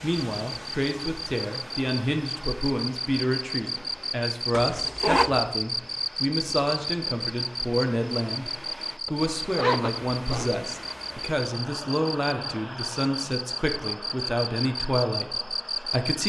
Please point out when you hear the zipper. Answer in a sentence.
The zipper can be heard from 4.5 to 5.3 s and from 9.1 to 10.9 s.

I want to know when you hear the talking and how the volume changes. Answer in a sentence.
The talking can be heard from 0.0 to 16.2 s, at a steady volume.